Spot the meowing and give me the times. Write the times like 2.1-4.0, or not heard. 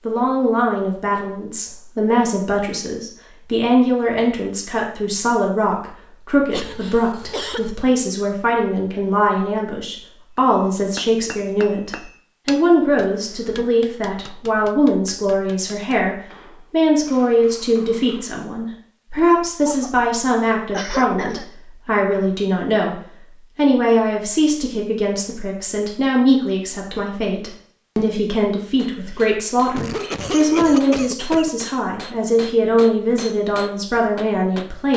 not heard.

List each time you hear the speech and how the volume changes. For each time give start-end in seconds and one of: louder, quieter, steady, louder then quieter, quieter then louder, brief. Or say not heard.
0.1-34.9 steady.